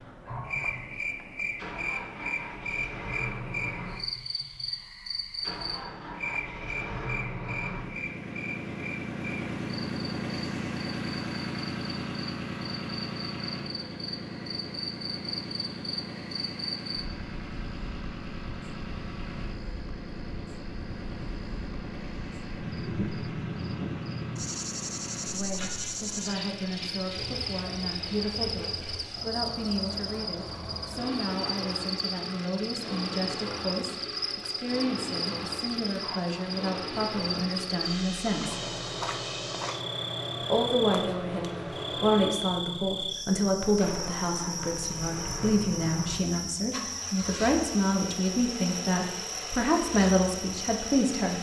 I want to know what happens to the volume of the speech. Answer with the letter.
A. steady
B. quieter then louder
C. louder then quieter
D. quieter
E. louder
E.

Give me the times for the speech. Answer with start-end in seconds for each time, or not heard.
25.3-38.6, 40.4-51.3.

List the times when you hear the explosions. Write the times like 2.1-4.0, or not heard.
not heard.